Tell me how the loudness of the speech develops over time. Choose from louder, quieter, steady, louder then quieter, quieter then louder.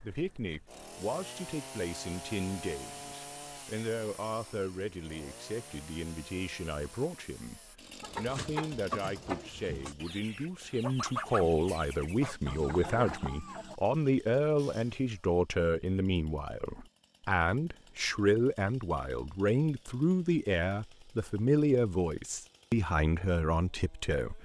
louder.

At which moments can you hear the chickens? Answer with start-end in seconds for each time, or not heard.
8.0-13.8.